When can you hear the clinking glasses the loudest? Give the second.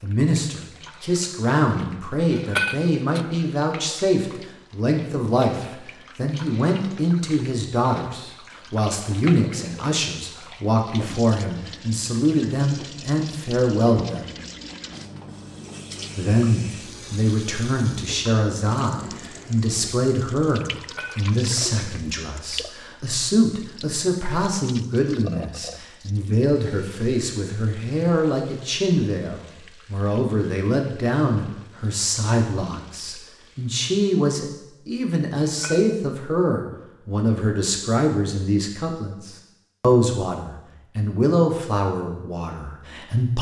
3 s.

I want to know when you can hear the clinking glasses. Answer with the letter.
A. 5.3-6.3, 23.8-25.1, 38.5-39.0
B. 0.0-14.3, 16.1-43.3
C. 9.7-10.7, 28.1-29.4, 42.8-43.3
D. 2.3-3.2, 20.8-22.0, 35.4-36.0
D.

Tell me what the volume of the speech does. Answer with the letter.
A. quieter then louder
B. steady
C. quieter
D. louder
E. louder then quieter
B.